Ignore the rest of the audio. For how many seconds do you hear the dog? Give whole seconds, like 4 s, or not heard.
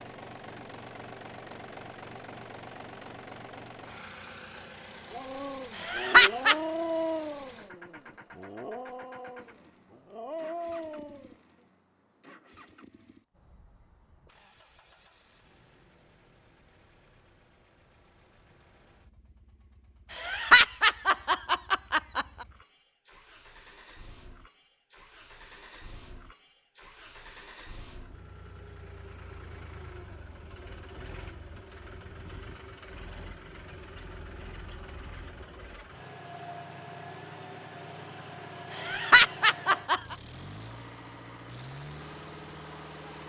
6 s.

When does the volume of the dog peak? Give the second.
7 s.